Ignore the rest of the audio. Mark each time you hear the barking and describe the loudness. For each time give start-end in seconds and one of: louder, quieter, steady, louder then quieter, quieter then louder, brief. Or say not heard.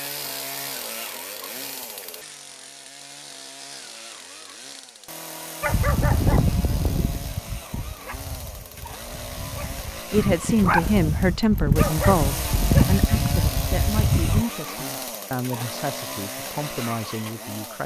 5.6-14.4 quieter then louder.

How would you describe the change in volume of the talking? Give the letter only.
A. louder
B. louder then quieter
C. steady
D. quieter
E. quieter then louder
D.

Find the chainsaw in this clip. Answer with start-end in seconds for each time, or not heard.
0.0-17.8.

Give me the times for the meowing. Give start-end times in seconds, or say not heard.
not heard.